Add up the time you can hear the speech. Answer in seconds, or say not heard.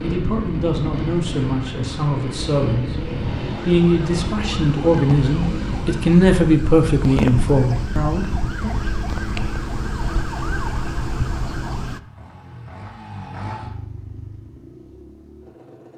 8 s.